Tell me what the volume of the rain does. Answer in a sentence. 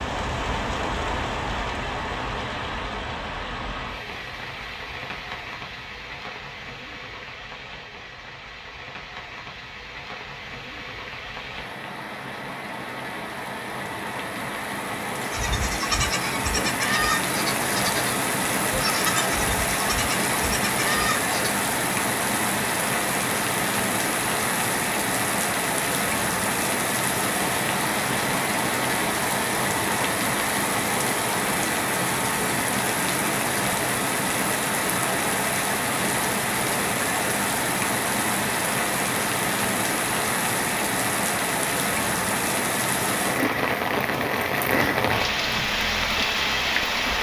The loudness of the rain goes up.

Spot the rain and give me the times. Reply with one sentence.
You can hear the rain from 0.0 to 47.1 s.